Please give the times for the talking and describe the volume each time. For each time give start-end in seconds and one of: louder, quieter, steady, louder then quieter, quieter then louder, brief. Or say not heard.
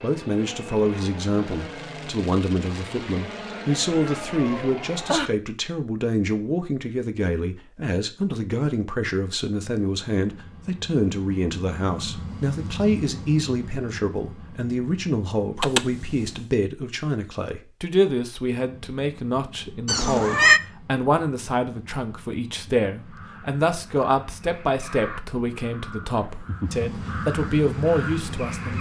0.0-28.7 steady.